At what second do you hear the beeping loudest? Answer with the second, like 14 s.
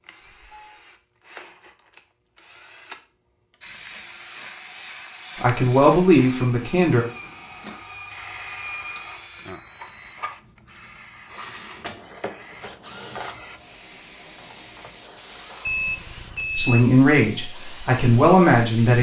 16 s.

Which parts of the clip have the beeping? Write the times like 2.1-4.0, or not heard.
0.3-0.8, 8.9-10.1, 15.7-16.9.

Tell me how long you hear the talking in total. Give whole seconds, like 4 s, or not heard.
4 s.